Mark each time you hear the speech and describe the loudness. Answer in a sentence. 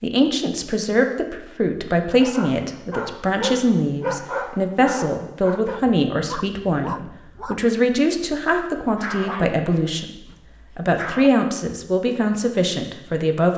The speech can be heard from 0.0 to 10.1 s, at a steady volume; and briefly from 10.8 to 13.5 s.